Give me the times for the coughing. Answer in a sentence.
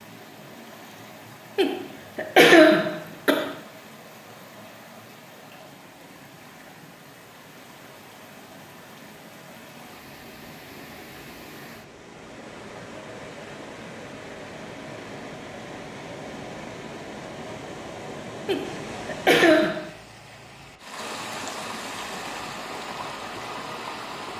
You can hear the coughing from 1.6 to 3.5 s and from 18.4 to 19.9 s.